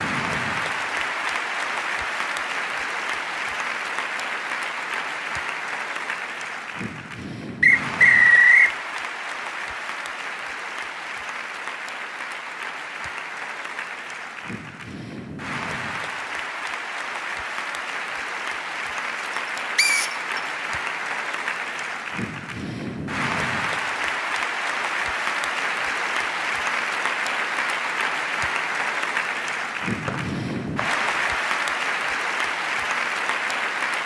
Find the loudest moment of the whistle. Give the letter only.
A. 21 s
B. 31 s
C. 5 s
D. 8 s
D.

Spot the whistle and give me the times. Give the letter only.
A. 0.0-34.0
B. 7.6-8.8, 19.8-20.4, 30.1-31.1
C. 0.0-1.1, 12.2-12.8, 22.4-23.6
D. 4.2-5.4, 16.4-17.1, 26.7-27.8
B.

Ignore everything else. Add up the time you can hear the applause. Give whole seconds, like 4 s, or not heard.
34 s.